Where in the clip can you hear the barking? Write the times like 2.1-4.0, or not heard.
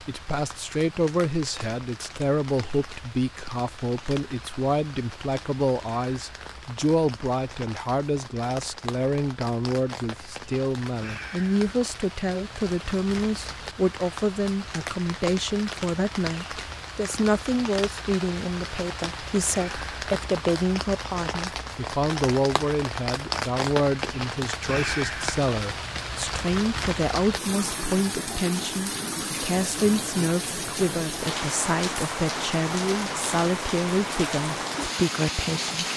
not heard.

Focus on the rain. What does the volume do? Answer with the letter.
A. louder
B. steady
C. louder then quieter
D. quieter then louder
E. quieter
A.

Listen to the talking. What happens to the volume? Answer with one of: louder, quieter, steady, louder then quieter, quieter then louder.
steady.